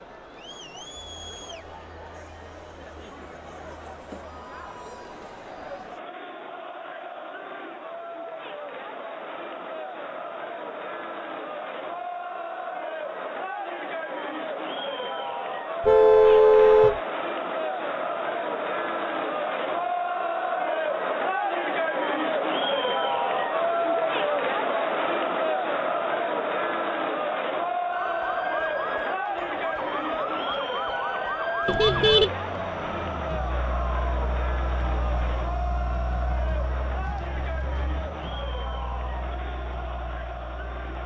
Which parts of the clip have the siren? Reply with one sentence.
The siren can be heard from 27.9 to 41.0 s.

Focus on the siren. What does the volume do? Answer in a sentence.
The volume of the siren goes down.